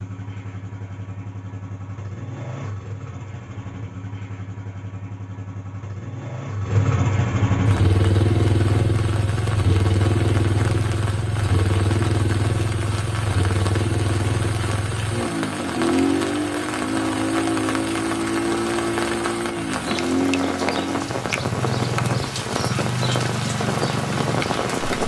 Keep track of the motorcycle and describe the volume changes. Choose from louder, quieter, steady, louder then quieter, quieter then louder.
louder.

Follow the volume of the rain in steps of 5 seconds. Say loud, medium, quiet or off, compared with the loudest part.
off, medium, medium, loud, loud.